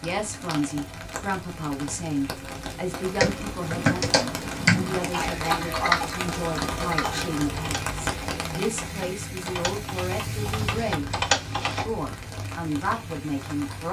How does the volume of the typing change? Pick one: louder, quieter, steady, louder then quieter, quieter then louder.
quieter then louder.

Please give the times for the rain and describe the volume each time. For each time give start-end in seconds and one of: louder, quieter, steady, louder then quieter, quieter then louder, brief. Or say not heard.
0.0-13.8 louder then quieter.